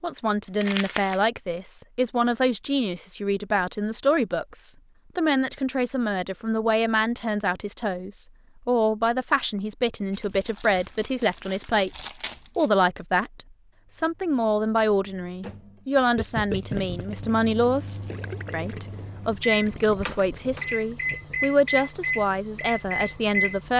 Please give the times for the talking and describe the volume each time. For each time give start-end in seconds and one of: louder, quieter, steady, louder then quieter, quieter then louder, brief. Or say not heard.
0.0-23.7 steady.